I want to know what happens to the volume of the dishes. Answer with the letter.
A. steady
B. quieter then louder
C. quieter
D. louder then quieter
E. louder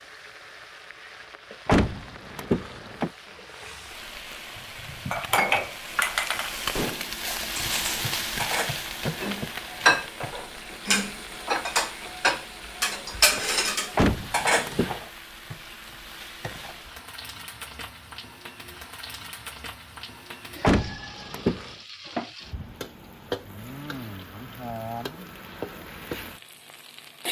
B.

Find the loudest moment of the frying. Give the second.
8 s.